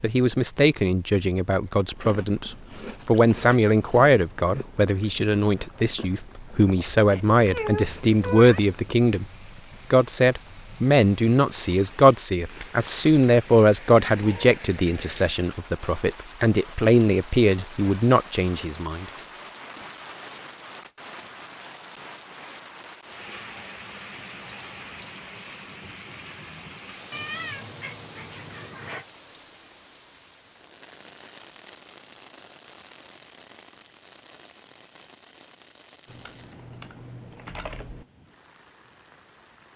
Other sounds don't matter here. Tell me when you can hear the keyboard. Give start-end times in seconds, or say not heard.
36.0-38.0.